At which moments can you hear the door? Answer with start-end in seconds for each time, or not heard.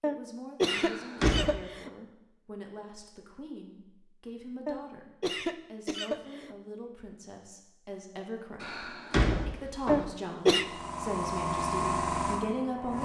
0.7-1.6, 8.6-10.1.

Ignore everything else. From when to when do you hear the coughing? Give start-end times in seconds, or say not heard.
0.0-1.9, 4.7-6.5, 9.8-10.7.